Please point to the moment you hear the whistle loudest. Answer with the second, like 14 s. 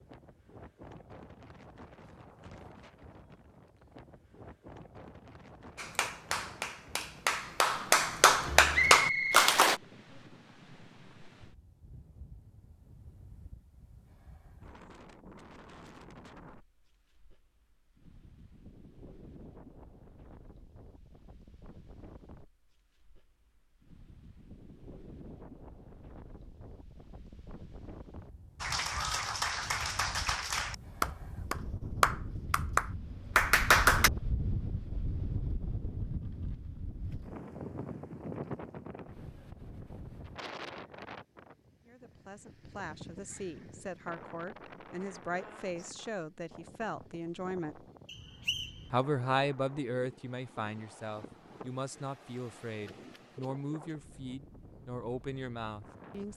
9 s.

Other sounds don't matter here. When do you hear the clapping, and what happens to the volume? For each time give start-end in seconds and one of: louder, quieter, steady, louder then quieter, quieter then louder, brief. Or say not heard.
5.8-9.8 louder
28.6-34.1 louder.